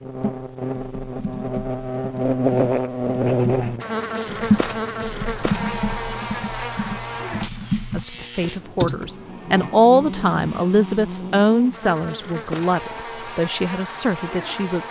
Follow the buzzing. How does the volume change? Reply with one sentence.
The volume of the buzzing goes down.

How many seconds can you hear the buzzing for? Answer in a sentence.
The buzzing can be heard for 15 seconds in total.